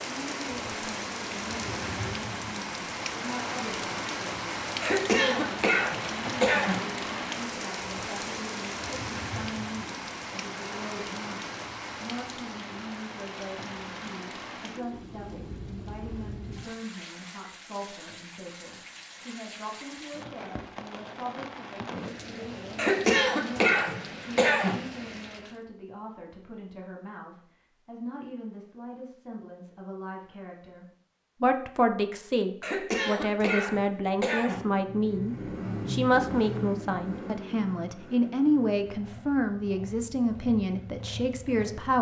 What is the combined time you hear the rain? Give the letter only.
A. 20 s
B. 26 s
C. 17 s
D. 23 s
B.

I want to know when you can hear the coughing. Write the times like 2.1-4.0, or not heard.
4.8-6.8, 22.8-24.8, 32.6-34.6.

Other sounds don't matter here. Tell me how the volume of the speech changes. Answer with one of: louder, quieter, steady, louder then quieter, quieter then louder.
louder.